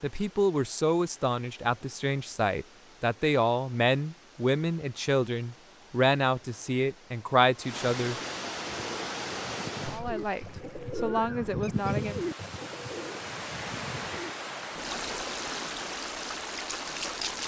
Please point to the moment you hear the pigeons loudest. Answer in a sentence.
The volume of the pigeons peaks at 12 seconds.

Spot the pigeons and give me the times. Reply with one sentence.
You can hear the pigeons from 8.8 to 15.3 s.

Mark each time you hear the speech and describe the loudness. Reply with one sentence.
You can hear the speech from 0.0 to 8.2 s, at a steady volume; and briefly from 9.9 to 12.2 s.